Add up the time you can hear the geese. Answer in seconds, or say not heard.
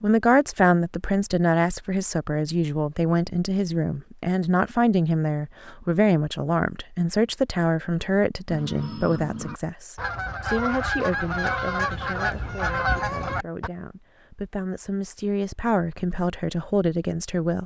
5 s.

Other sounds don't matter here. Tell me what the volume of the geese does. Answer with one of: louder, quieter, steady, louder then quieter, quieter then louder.
louder.